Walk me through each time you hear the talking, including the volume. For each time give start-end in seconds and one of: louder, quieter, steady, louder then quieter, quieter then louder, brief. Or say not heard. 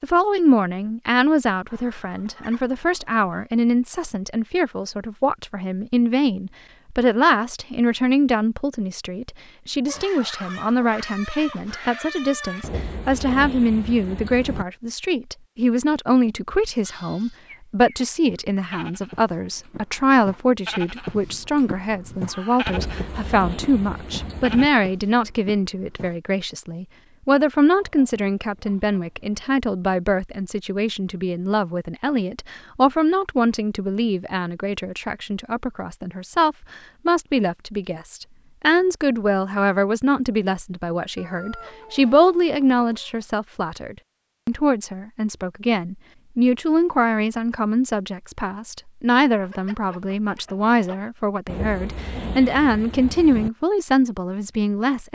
0.0-55.1 steady.